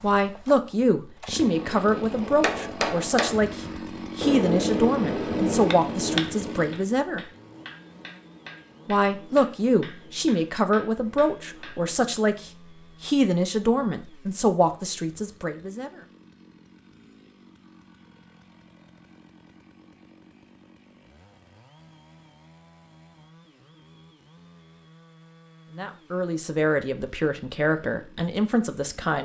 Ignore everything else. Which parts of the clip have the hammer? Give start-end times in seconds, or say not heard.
2.1-12.0.